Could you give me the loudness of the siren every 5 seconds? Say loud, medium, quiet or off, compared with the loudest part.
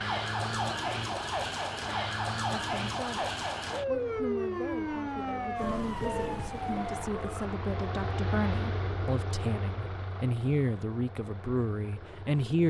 loud, loud, off.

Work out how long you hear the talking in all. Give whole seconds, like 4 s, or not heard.
10 s.